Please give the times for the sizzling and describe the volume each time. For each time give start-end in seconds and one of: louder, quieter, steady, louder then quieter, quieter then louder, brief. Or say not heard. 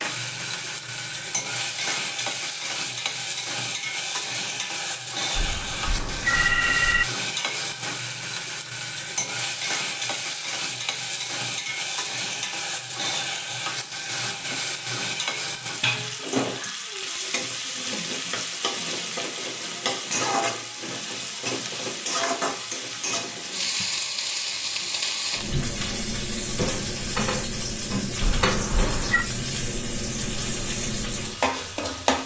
0.0-32.2 steady.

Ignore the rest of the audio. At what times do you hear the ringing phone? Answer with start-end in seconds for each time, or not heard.
5.3-7.0, 28.2-29.2.